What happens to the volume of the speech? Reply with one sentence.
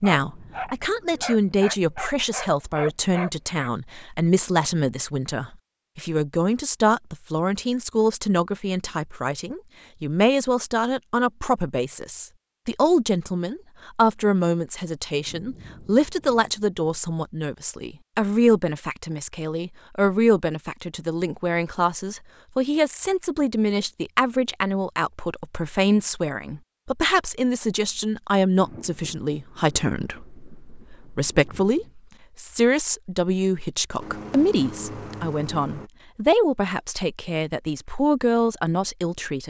The volume of the speech stays about the same.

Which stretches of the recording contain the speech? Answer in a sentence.
You can hear the speech from 0.0 to 39.4 s.